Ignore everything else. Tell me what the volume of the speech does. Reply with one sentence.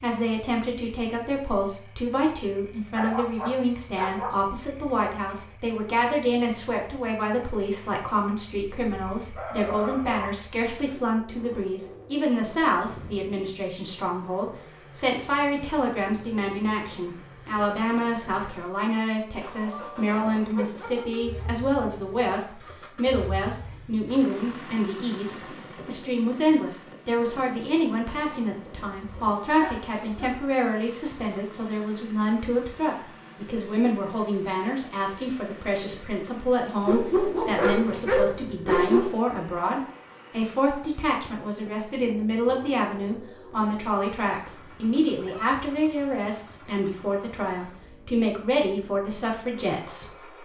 The volume of the speech stays about the same.